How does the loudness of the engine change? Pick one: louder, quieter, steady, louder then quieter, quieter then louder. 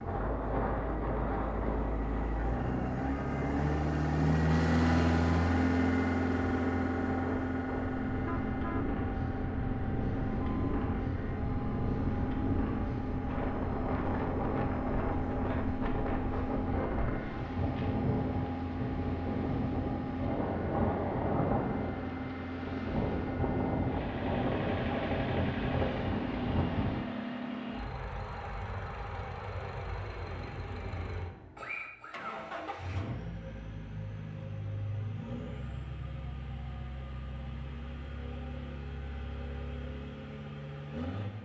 quieter.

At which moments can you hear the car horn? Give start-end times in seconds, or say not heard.
8.1-8.9.